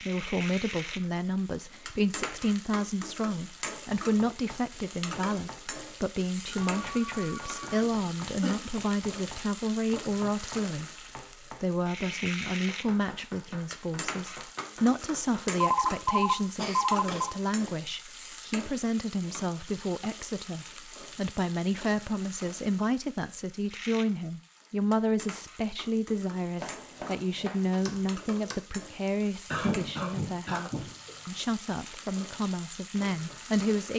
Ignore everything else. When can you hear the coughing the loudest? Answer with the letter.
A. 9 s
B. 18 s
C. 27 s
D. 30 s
D.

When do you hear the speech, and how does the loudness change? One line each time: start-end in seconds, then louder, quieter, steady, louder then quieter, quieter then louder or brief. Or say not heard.
0.0-33.9 steady.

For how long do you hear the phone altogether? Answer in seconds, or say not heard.
4 s.